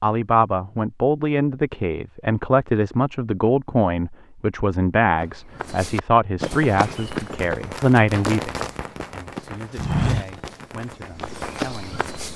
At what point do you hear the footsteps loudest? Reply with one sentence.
The volume of the footsteps peaks at 10 seconds.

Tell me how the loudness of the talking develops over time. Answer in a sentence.
The loudness of the talking goes down.